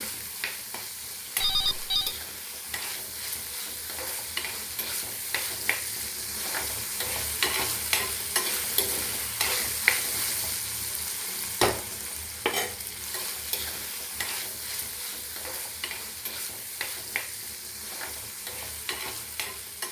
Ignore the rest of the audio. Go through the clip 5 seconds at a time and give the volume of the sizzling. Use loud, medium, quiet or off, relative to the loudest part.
medium, loud, loud, medium.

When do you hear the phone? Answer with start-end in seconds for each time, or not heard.
1.4-2.1.